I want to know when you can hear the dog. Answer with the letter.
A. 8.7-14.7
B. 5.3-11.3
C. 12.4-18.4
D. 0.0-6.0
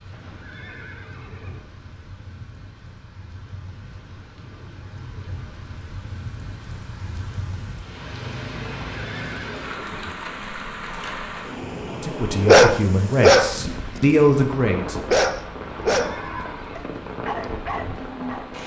C.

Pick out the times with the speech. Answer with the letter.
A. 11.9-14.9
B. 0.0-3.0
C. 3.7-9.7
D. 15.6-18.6
A.